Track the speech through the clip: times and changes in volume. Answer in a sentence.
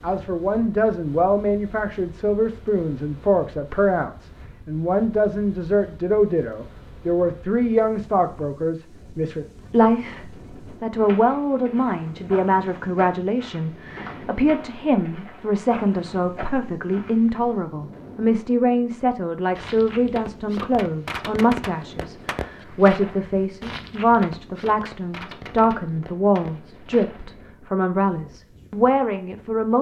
You can hear the speech from 0.0 to 29.7 s, at a steady volume.